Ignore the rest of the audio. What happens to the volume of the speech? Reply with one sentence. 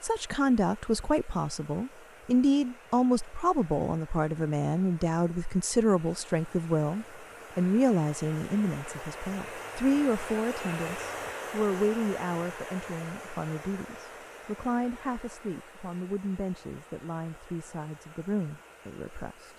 The volume of the speech goes down.